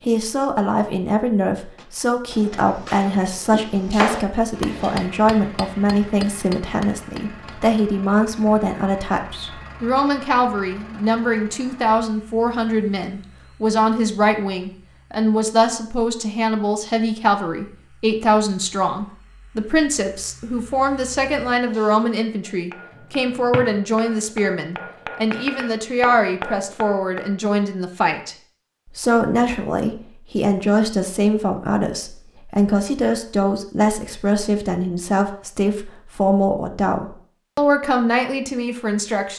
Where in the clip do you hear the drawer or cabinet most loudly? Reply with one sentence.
The loudest moment of the drawer or cabinet is at 4 seconds.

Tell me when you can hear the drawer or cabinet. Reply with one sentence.
The drawer or cabinet can be heard from 3.5 to 5.0 s and from 22.9 to 23.8 s.